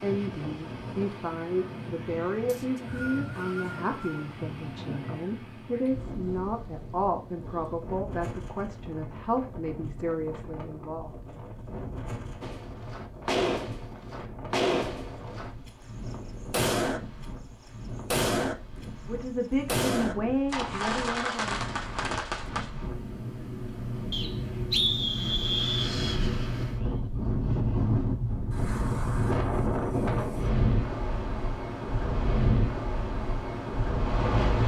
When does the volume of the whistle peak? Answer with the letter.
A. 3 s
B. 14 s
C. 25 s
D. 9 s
C.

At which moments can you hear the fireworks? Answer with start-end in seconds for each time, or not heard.
12.4-15.7, 16.5-17.0, 18.1-18.6, 19.6-22.7.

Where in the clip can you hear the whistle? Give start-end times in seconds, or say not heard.
2.5-4.3, 24.1-25.9.